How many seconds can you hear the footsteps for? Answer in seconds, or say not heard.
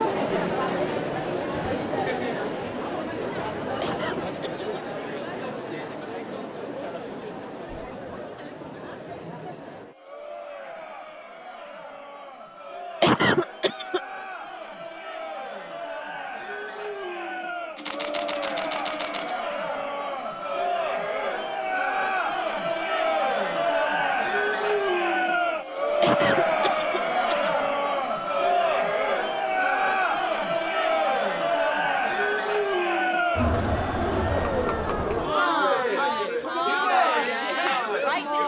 not heard.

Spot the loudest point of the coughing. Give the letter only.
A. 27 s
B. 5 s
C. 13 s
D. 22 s
C.